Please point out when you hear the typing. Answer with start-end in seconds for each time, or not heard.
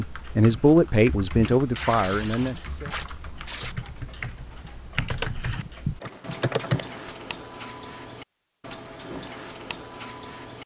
0.0-7.0.